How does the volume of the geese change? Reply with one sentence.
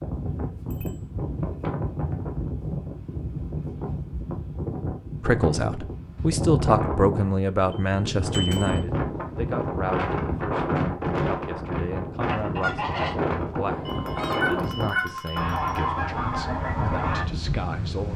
The loudness of the geese goes down, then up.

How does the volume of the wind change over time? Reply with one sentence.
The loudness of the wind stays about the same.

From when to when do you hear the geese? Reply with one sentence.
The geese can be heard from 12.2 to 17.2 s.